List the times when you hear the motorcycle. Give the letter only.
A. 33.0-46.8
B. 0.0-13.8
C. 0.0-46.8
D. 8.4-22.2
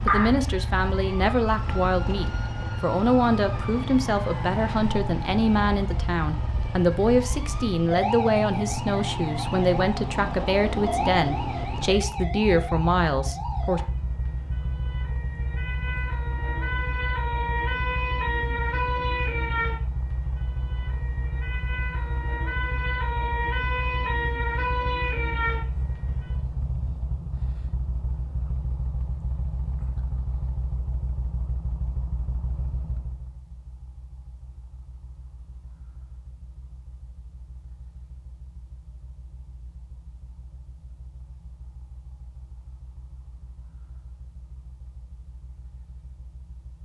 C.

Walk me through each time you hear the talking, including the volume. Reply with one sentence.
You can hear the talking from 0.0 to 13.8 s, at a steady volume.